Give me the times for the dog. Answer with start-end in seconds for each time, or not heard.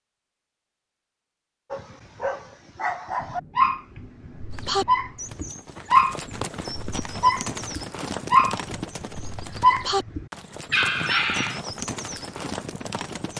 1.7-11.6.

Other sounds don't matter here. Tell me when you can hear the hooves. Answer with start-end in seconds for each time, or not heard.
4.5-13.3.